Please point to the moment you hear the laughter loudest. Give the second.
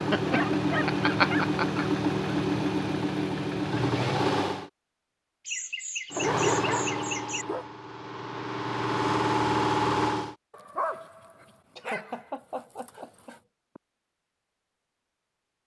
1 s.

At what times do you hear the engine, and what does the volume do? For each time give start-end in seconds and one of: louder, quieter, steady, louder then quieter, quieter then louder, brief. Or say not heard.
0.0-4.7 steady
6.1-10.3 quieter then louder.